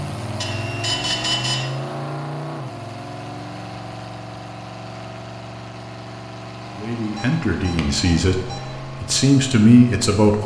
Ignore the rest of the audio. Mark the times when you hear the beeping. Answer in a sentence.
You can hear the beeping from 0.4 to 1.6 s and from 7.2 to 8.9 s.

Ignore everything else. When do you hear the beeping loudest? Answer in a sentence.
The loudest moment of the beeping is at 1 second.